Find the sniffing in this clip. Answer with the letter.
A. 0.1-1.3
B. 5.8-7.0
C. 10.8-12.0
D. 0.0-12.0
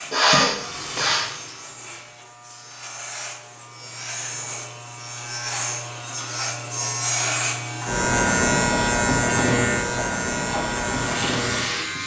A.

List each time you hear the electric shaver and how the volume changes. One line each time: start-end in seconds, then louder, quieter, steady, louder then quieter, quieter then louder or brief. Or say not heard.
0.0-12.0 louder.